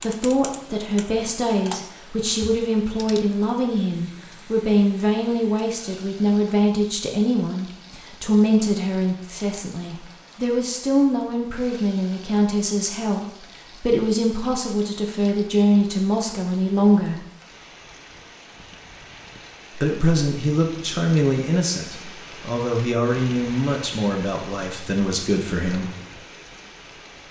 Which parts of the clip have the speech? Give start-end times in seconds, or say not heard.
0.0-17.2, 19.8-25.9.